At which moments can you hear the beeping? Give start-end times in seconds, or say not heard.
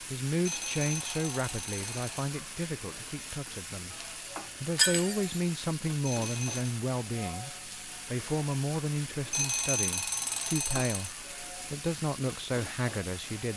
0.5-2.3, 6.0-6.8, 9.3-11.2.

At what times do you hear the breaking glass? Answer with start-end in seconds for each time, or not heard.
4.8-5.3.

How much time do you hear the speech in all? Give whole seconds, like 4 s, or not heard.
13 s.